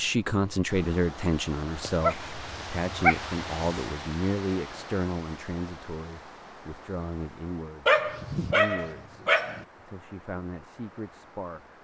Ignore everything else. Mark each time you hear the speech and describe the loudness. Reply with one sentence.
The speech can be heard from 0.0 to 11.7 s, getting quieter.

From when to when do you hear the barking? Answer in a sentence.
You can hear the barking from 1.8 to 4.0 s and from 7.8 to 9.7 s.